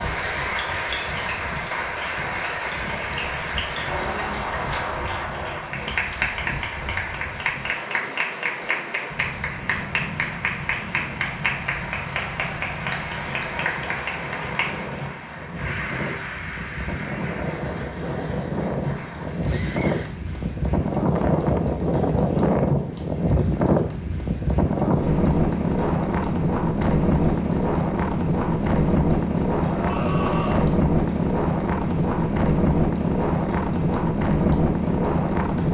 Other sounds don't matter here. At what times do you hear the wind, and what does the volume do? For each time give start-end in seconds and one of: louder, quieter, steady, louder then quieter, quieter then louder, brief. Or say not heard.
0.0-35.6 louder.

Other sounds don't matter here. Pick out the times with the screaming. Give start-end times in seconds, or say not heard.
0.1-1.3, 19.4-20.1, 29.6-30.7.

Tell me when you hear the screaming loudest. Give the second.
30 s.